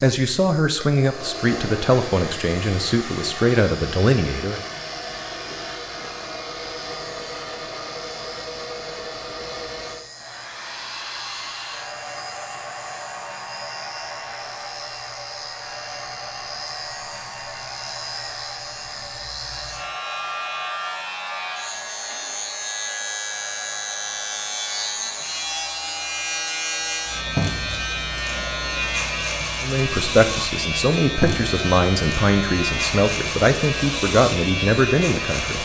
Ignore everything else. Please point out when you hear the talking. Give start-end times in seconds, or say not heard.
0.0-4.6, 29.6-35.6.